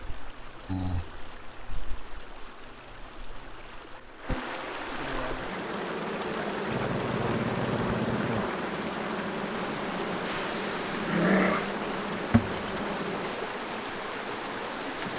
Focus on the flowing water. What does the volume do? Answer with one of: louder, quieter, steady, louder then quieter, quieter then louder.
louder.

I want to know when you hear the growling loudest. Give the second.
11 s.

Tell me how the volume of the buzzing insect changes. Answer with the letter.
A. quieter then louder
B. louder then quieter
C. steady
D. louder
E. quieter
D.